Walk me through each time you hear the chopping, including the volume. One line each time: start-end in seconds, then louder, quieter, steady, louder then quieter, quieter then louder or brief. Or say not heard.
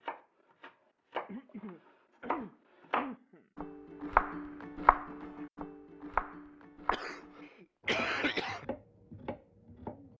0.0-10.1 louder then quieter.